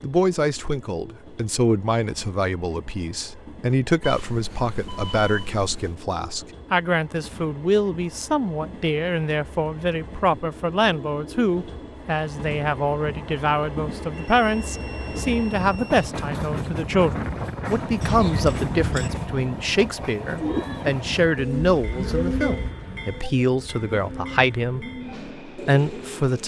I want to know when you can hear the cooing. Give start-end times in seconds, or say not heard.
20.4-26.4.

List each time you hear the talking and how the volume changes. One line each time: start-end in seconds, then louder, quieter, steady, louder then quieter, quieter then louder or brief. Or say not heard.
0.0-24.9 steady
25.4-26.4 brief.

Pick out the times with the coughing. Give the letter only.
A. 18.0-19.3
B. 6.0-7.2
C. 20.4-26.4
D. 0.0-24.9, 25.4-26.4
A.